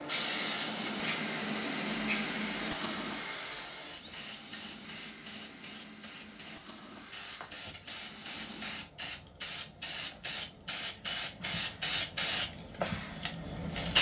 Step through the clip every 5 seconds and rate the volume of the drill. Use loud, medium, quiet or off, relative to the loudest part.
loud, medium, off.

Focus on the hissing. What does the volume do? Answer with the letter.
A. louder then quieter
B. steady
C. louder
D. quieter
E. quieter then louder
E.